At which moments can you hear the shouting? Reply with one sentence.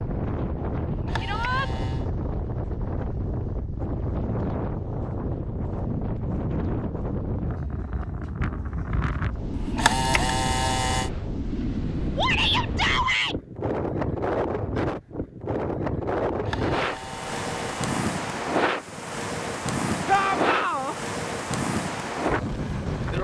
You can hear the shouting from 1.2 to 1.7 s, from 12.2 to 13.3 s and from 20.1 to 20.9 s.